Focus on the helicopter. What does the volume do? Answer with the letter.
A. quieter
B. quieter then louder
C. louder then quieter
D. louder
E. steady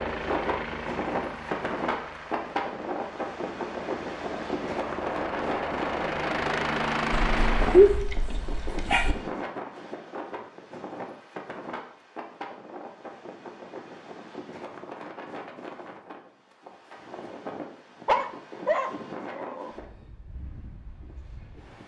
B.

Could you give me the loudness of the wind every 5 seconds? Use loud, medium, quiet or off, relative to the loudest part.
loud, loud, medium, medium, quiet.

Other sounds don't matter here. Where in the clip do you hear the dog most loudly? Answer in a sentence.
The loudest moment of the dog is at 8 seconds.